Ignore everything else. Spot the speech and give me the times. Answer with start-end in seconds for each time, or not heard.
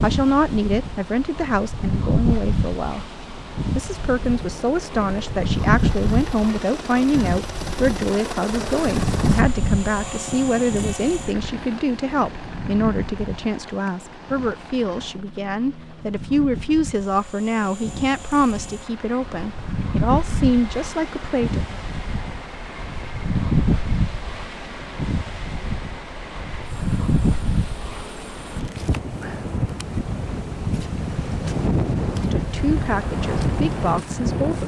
0.0-3.0, 3.8-21.8, 32.3-34.6.